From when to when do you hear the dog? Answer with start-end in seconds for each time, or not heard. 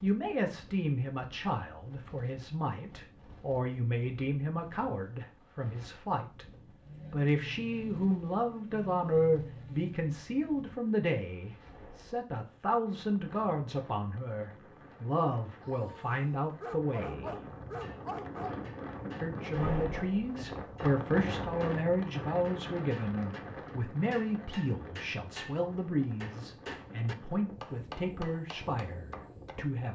15.6-18.6.